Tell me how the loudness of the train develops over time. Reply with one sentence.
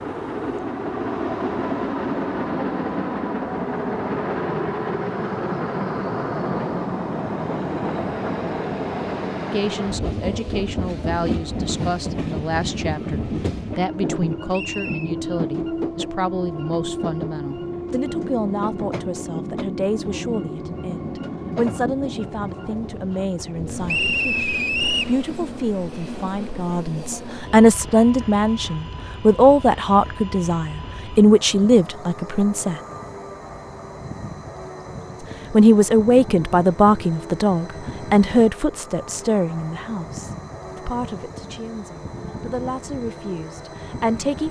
The loudness of the train goes down.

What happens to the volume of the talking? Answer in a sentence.
The loudness of the talking goes up, then down.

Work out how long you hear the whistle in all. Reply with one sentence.
The whistle can be heard for 2 seconds in total.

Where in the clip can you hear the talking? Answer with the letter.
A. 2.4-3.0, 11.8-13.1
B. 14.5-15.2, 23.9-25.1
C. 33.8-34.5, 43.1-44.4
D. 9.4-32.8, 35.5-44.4
D.